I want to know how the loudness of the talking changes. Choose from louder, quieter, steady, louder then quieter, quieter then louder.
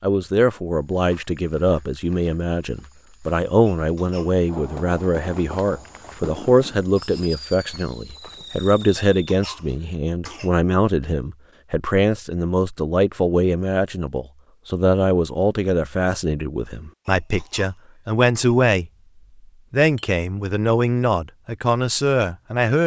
steady.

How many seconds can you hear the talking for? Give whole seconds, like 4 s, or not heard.
22 s.